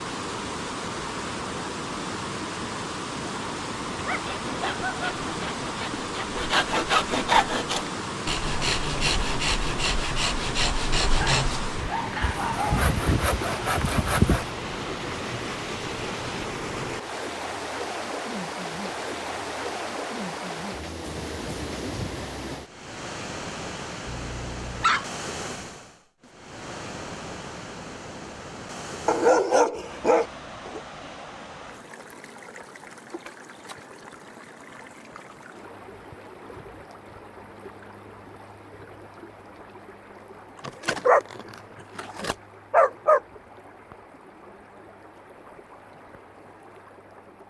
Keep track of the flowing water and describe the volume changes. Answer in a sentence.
The volume of the flowing water goes down.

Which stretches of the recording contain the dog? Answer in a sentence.
You can hear the dog from 4.0 to 5.0 s, from 11.1 to 12.8 s, from 24.1 to 25.6 s, from 29.1 to 30.8 s and from 40.6 to 43.2 s.